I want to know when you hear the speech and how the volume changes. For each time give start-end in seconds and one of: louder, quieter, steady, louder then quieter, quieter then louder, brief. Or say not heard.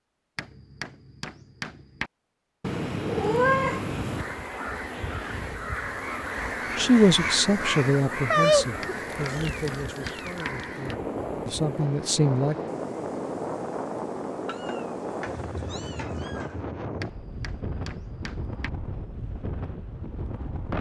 6.8-12.6 quieter then louder.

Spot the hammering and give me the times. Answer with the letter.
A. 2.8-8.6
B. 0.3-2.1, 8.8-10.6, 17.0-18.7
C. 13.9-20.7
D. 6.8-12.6
B.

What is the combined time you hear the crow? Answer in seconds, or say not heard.
7 s.